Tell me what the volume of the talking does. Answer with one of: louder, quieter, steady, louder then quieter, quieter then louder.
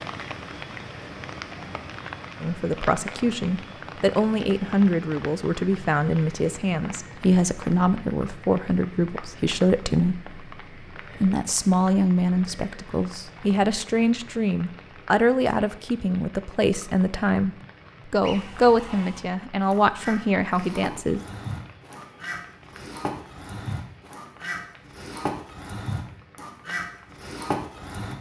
steady.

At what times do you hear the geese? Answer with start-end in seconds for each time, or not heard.
18.2-28.1.